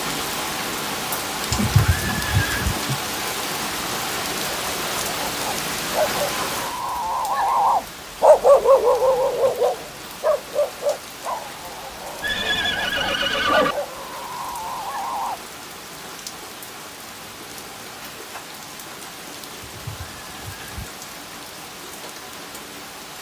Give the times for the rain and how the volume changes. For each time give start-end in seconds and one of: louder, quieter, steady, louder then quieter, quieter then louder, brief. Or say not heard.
0.0-23.1 quieter.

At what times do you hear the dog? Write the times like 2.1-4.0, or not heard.
4.5-15.4.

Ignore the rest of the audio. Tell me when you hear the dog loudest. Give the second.
8 s.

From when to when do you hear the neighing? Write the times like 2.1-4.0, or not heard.
1.5-2.8, 12.2-13.8, 19.6-20.9.